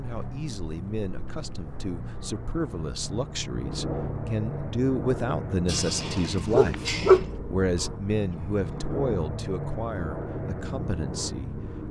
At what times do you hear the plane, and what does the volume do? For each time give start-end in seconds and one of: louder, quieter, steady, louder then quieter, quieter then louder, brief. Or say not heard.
0.0-11.8 louder.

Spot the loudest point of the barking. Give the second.
7 s.